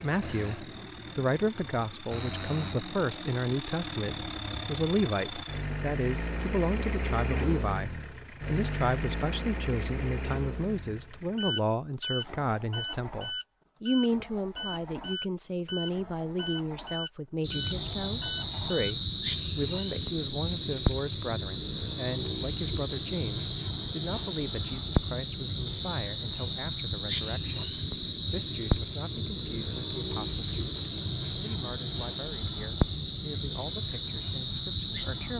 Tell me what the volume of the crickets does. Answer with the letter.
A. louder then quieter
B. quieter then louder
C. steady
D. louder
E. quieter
C.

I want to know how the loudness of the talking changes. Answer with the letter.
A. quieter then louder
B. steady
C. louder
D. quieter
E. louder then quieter
D.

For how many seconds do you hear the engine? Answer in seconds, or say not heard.
19 s.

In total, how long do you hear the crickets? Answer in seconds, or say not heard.
18 s.